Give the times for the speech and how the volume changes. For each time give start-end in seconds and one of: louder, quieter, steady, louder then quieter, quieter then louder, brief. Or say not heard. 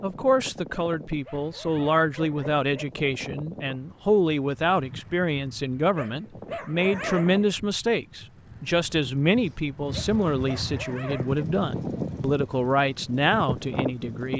0.0-14.3 steady.